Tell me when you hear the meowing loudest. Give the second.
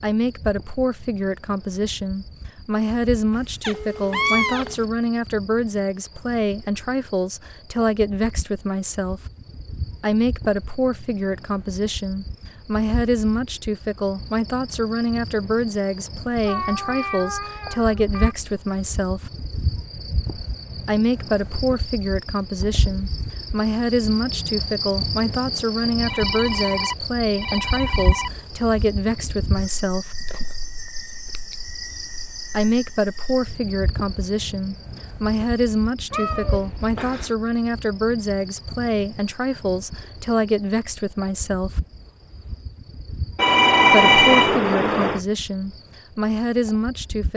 4 s.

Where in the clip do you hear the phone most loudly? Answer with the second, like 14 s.
44 s.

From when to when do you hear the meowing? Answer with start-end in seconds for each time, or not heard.
3.6-4.9, 16.4-18.4, 36.1-37.4.